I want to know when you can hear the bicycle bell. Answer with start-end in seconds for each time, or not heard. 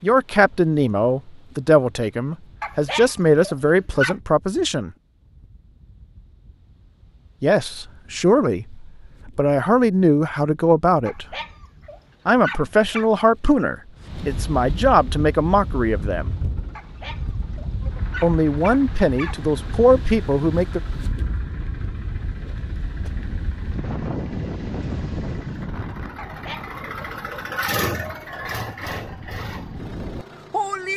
not heard.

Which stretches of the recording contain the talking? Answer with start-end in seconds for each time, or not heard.
0.0-4.9, 7.4-11.2, 12.2-16.3, 18.2-20.8.